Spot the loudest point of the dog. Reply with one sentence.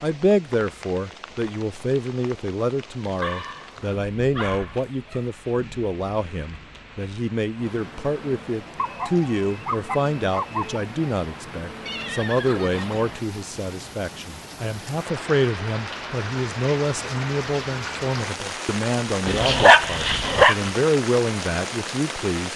The loudest moment of the dog is at 20 seconds.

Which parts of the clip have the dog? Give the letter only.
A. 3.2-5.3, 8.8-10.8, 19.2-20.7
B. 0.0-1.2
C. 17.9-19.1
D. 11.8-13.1
A.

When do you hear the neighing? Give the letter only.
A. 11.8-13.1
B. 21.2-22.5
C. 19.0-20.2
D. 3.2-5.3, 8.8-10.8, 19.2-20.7
A.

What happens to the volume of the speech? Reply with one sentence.
The loudness of the speech stays about the same.